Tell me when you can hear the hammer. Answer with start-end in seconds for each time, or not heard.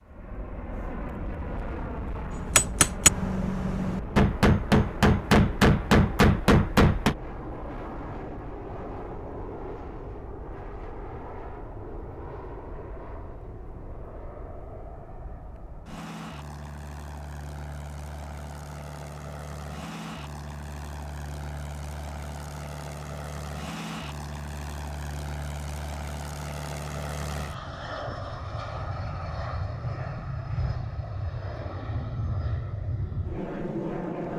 2.4-7.2.